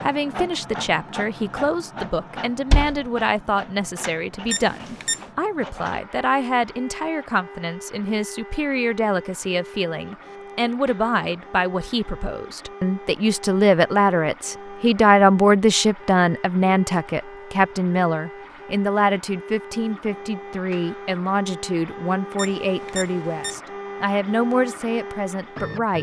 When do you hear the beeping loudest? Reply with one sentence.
The volume of the beeping peaks at 5 seconds.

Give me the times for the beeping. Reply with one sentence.
You can hear the beeping from 4.5 to 5.2 s and from 22.4 to 23.6 s.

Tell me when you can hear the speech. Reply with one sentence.
You can hear the speech from 0.0 to 25.9 s.